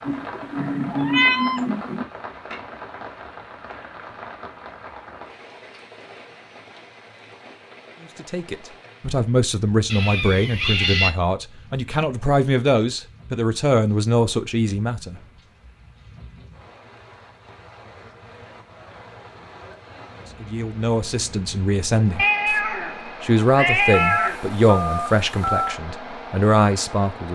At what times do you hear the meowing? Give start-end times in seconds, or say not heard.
0.1-2.0, 9.9-11.2, 22.1-24.4.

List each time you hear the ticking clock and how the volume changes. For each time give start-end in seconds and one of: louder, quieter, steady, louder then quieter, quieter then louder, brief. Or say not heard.
not heard.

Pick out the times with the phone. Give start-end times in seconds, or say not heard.
23.9-25.8.